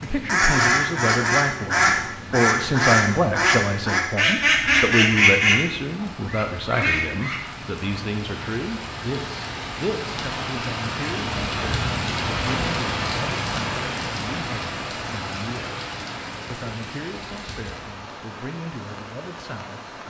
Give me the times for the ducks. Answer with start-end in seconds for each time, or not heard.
0.0-7.4.